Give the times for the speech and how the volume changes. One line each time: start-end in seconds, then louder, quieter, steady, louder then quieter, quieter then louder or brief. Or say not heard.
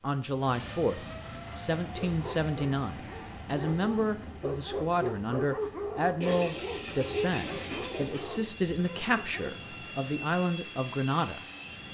0.0-11.4 steady.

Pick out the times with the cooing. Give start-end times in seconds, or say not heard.
2.8-4.3, 6.2-8.2.